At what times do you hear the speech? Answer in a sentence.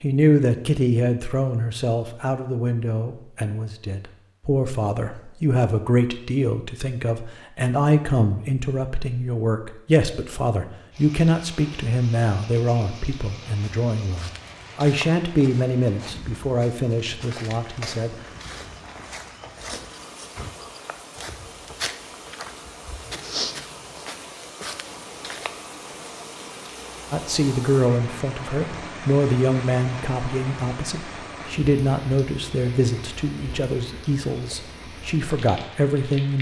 You can hear the speech from 0.0 to 18.1 s and from 27.1 to 36.3 s.